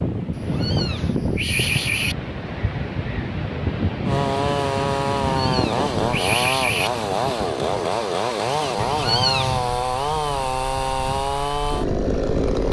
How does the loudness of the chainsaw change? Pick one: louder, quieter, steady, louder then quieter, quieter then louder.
steady.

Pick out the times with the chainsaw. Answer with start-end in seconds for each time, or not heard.
4.0-12.6.